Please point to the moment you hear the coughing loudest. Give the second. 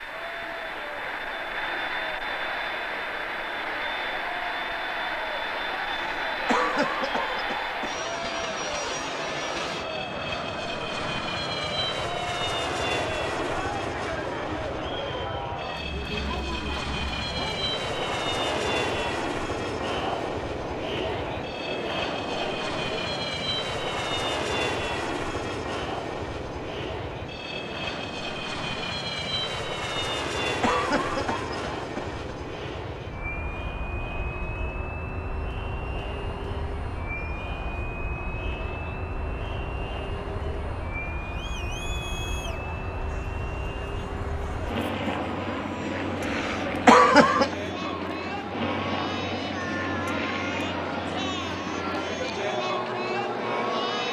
47 s.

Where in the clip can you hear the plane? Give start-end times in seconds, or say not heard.
0.0-54.0.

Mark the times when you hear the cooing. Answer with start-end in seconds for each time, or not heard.
not heard.